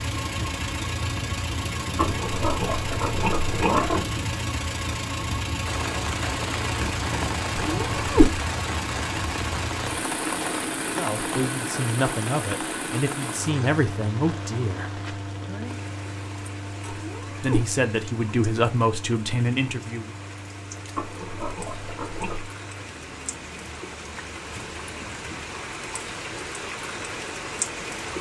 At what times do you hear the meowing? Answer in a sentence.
The meowing can be heard from 7.6 to 8.3 s and from 16.9 to 17.7 s.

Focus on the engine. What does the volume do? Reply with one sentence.
The loudness of the engine goes down.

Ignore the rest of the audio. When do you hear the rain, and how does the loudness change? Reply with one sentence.
You can hear the rain from 5.7 to 28.1 s, getting quieter then louder.